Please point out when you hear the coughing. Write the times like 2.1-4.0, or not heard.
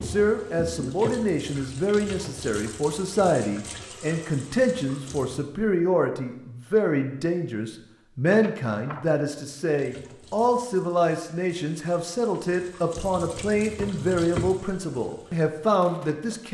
not heard.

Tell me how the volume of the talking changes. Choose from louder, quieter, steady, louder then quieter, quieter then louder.
steady.